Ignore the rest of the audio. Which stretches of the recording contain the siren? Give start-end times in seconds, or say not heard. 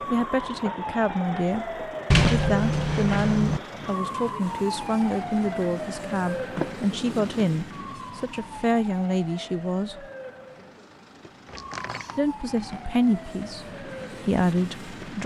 0.0-15.2.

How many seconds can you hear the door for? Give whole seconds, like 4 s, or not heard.
4 s.